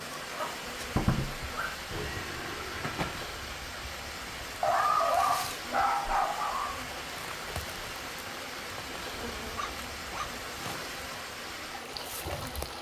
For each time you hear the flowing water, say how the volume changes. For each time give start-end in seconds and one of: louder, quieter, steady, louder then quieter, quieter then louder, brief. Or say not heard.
0.0-12.7 steady.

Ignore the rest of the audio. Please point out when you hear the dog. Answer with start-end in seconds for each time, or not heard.
0.3-1.8, 4.6-6.8, 9.4-10.4.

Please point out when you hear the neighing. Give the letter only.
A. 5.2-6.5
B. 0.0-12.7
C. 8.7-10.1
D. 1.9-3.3
D.